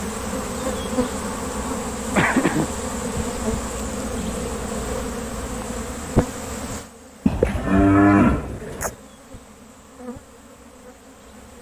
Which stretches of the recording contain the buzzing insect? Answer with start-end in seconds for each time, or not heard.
0.0-11.5.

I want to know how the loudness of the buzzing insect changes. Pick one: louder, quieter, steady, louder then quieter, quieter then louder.
quieter.